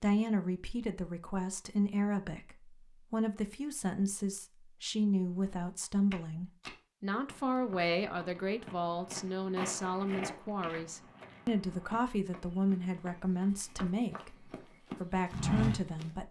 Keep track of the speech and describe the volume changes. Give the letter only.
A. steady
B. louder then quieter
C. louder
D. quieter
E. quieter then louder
A.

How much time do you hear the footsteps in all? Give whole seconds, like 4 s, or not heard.
11 s.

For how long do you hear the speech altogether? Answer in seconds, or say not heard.
16 s.